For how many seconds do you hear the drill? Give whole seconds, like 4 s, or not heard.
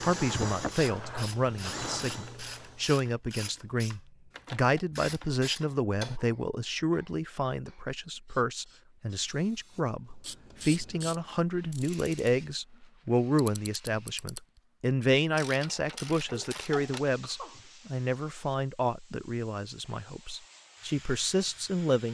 2 s.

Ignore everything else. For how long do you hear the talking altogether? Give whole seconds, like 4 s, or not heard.
22 s.